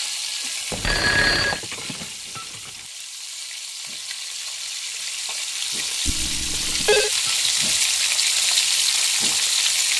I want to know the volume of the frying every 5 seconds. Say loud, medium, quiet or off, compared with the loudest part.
medium, loud.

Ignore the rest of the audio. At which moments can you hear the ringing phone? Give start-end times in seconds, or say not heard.
0.7-1.6, 6.0-7.1.